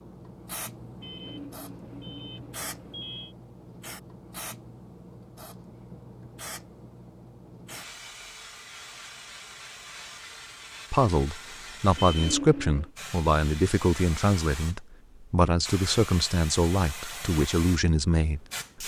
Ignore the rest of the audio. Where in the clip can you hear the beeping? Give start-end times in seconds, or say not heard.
1.0-3.4, 11.9-12.9.